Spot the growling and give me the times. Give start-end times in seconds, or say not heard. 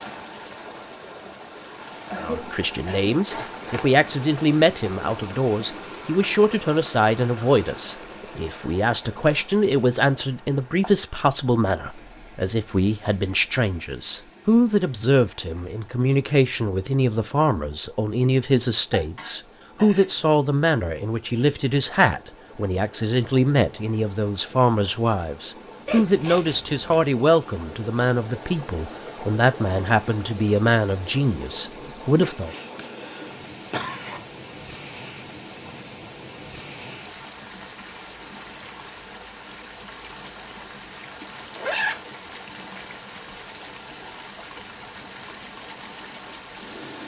not heard.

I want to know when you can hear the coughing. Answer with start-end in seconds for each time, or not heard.
2.0-3.1, 18.9-20.3, 32.1-34.2.